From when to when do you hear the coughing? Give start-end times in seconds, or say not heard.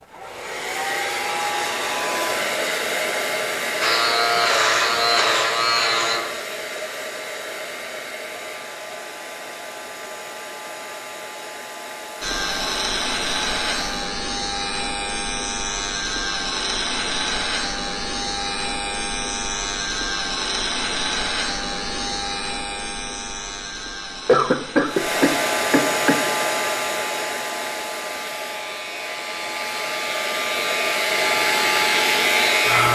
24.2-26.2.